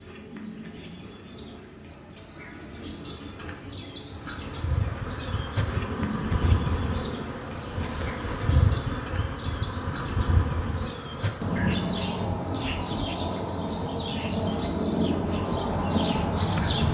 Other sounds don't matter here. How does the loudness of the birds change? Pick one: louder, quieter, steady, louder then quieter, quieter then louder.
louder.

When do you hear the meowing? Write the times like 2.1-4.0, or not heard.
not heard.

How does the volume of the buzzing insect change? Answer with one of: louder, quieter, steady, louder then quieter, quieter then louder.
quieter.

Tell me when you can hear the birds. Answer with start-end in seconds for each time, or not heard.
0.0-16.8.